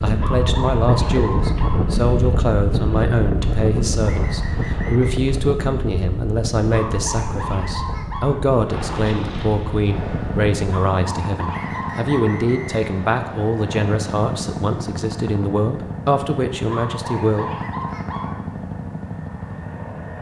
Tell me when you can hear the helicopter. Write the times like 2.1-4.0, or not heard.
8.7-20.1.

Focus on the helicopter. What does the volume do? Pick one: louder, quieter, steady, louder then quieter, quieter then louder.
steady.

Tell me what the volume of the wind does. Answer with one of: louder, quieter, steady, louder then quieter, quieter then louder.
quieter.